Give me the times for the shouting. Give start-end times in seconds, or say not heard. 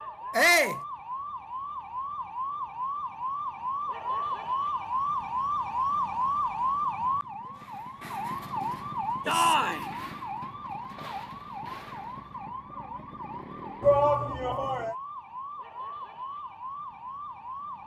0.3-0.8, 9.2-9.8, 13.8-14.9.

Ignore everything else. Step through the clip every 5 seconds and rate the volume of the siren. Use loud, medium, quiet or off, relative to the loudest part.
loud, loud, medium, medium.